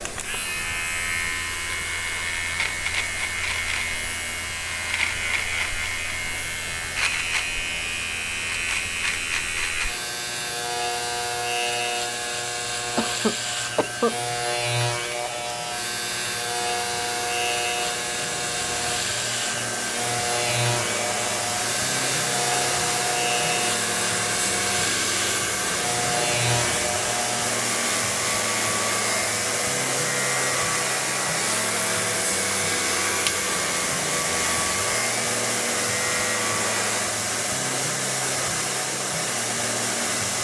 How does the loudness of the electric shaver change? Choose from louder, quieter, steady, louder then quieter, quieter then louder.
steady.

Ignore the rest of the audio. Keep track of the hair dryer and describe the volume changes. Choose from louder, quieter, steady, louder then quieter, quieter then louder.
louder.